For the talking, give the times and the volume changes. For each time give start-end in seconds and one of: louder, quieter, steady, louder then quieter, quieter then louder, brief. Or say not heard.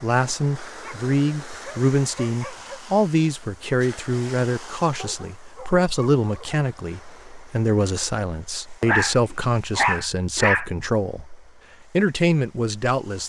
0.0-13.2 steady.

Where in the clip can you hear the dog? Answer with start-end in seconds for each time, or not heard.
0.8-2.8, 4.9-6.6, 8.8-10.7.